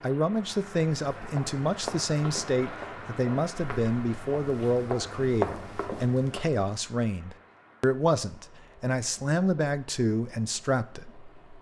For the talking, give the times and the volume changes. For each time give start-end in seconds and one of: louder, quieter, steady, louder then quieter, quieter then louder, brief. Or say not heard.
0.0-11.2 steady.